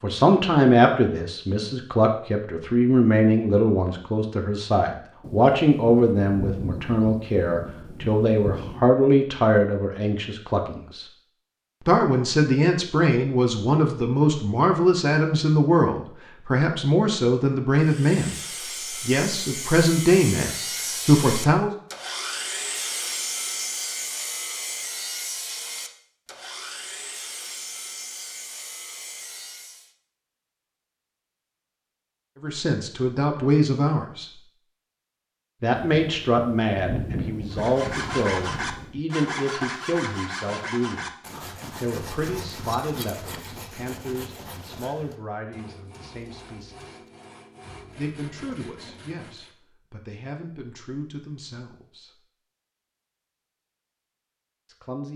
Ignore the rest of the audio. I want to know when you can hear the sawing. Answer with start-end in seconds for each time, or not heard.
17.8-29.9, 37.5-49.5.